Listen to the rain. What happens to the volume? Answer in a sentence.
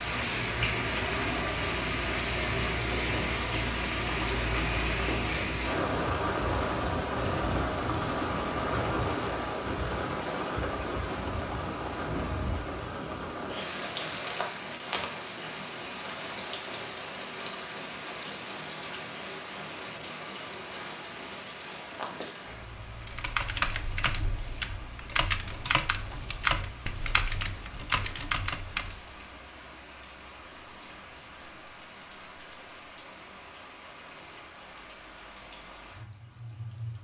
The volume of the rain goes down.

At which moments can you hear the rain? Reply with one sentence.
The rain can be heard from 0.0 to 37.0 s.